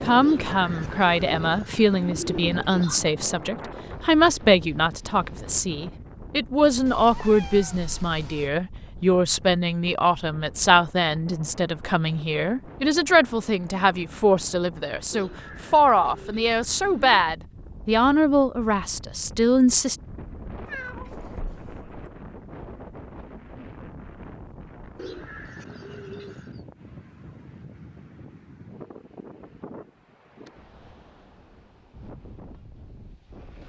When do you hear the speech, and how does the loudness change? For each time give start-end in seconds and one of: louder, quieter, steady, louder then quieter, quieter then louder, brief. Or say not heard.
0.0-19.9 steady.